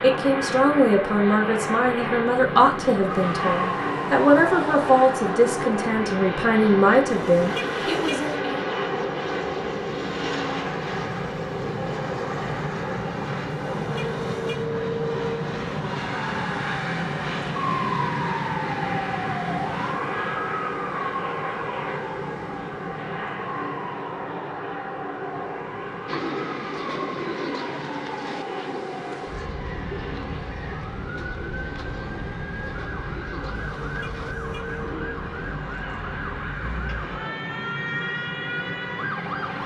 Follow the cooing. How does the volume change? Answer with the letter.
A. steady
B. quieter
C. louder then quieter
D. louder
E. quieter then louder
B.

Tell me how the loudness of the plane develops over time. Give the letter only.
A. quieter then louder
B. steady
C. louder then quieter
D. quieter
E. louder
D.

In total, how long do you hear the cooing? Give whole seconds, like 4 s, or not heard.
11 s.